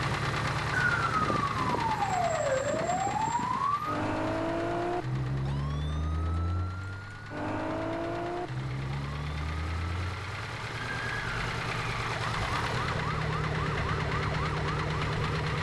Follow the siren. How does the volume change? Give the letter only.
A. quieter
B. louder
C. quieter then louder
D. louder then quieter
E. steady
A.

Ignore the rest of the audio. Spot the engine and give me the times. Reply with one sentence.
The engine can be heard from 0.0 to 15.5 s.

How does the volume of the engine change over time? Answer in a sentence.
The volume of the engine goes down, then up.